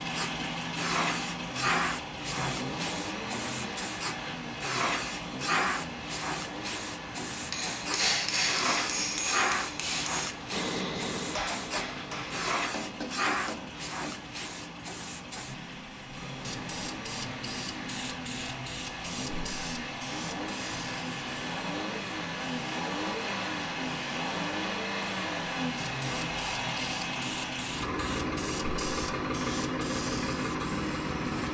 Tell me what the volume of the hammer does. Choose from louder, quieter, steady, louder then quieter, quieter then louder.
quieter.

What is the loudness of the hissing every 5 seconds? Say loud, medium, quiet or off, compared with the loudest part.
loud, loud, loud, medium, medium, medium, medium.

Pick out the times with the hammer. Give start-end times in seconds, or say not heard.
7.5-14.2.